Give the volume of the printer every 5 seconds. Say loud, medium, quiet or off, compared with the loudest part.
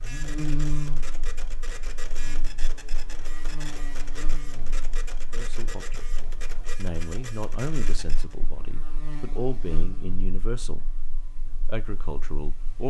loud, loud, off.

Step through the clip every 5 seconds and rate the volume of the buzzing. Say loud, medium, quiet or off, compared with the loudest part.
loud, medium, quiet.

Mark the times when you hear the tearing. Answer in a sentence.
The tearing can't be heard in this clip.